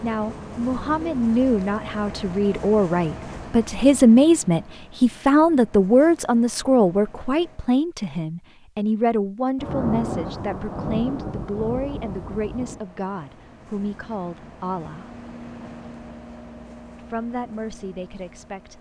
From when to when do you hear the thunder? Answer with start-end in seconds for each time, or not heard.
9.6-12.8.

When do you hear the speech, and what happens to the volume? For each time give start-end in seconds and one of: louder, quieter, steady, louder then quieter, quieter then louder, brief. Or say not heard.
0.0-15.1 louder then quieter
16.9-18.7 brief.